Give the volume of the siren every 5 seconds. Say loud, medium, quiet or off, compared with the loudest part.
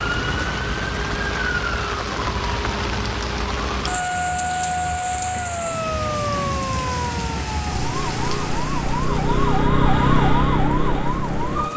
medium, loud, loud.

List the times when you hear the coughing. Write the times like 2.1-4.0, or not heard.
not heard.